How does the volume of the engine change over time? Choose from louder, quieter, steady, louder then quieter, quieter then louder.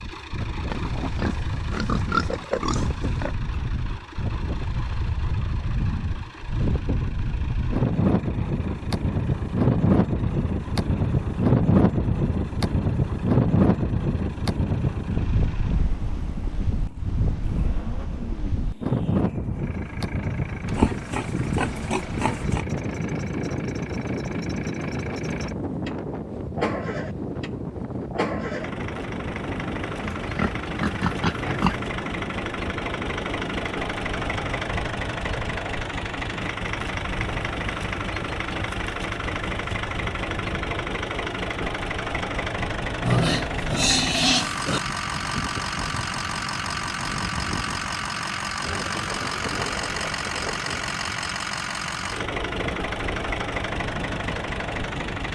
louder.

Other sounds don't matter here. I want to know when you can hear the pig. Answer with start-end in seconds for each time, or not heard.
0.7-3.4, 20.8-22.6, 30.0-31.8, 43.0-44.8.